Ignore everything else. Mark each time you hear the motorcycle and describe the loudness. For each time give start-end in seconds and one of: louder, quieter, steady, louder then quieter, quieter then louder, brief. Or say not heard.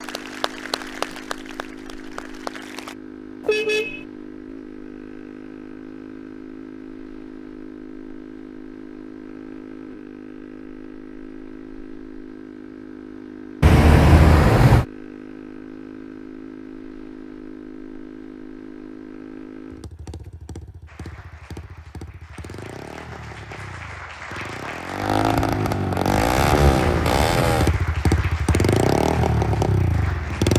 0.0-30.5 louder.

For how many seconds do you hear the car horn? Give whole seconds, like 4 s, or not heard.
3 s.